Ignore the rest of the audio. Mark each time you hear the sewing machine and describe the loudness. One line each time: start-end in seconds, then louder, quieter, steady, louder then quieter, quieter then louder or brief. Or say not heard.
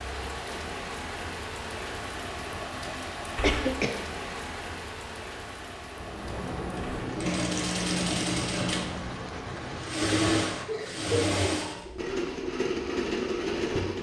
5.9-13.9 steady.